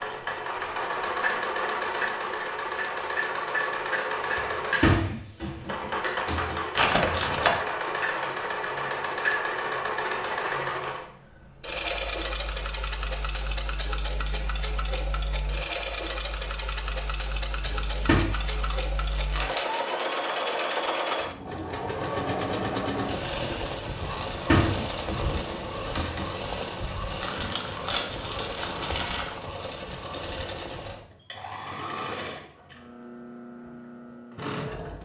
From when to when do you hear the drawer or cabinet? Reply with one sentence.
The drawer or cabinet can be heard from 4.3 to 6.6 s, from 17.6 to 18.2 s and from 24.1 to 26.2 s.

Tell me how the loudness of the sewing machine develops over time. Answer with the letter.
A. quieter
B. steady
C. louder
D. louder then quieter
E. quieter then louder
A.